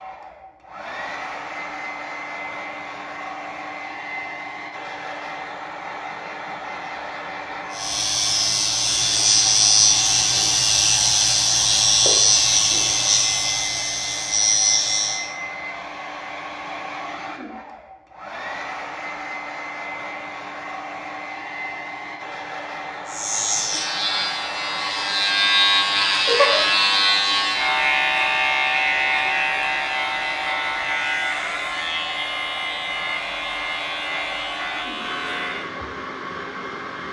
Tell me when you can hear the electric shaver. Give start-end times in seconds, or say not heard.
7.7-15.2, 23.1-35.7.